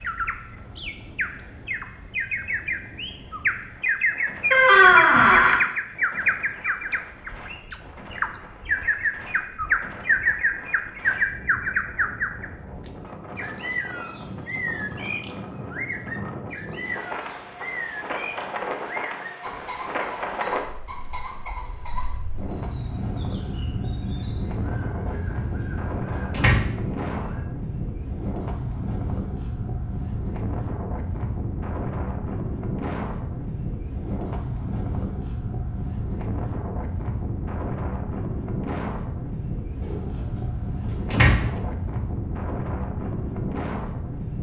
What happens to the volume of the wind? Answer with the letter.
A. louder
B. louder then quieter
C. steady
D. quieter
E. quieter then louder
A.